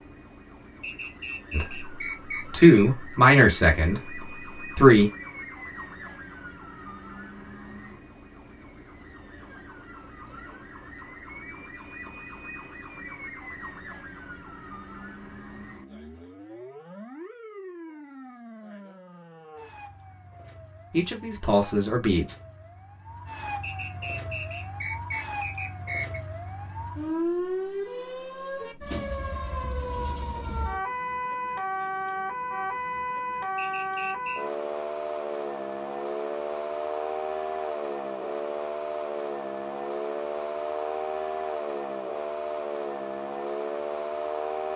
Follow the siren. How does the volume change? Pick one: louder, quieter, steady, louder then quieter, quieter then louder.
louder.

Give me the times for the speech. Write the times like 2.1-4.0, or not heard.
1.5-5.1, 20.9-22.4.